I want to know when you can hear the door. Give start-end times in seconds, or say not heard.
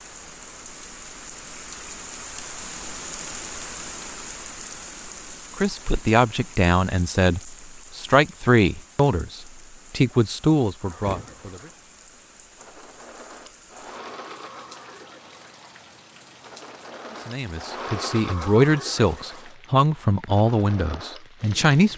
11.0-11.4.